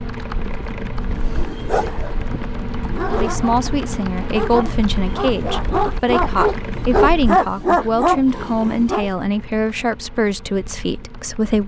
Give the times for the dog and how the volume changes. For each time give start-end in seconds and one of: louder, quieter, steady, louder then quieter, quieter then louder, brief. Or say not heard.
1.0-9.1 louder.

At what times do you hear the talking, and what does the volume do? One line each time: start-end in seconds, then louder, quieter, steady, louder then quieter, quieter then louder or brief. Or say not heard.
3.1-11.6 steady.